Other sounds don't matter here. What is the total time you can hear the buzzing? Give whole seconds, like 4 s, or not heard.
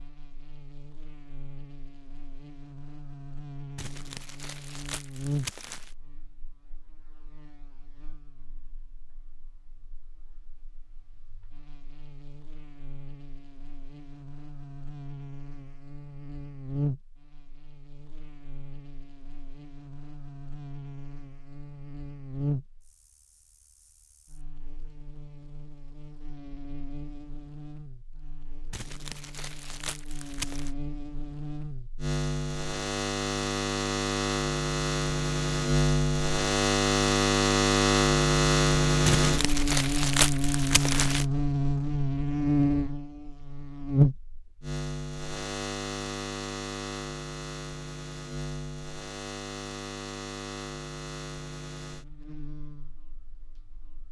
54 s.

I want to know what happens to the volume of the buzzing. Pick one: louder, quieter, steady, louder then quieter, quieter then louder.
louder then quieter.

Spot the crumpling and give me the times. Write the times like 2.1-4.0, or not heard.
3.8-6.0, 28.7-30.7, 39.0-41.2.